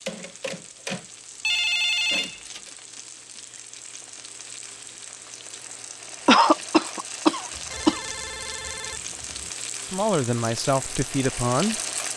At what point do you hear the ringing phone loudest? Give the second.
2 s.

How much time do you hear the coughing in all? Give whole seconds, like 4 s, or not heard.
2 s.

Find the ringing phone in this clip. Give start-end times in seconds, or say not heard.
0.1-2.7, 7.5-9.5.